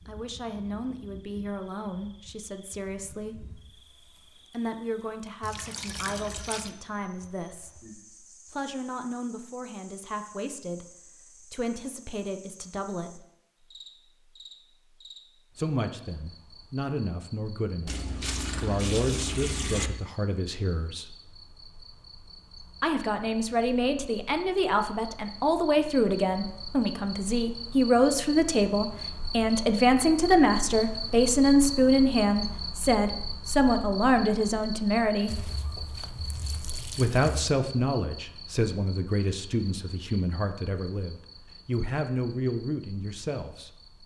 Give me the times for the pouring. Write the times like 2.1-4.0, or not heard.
5.4-6.7, 17.9-19.9, 35.2-37.5.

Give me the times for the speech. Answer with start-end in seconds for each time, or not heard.
0.1-13.2, 15.6-21.1, 22.8-35.4, 37.0-43.8.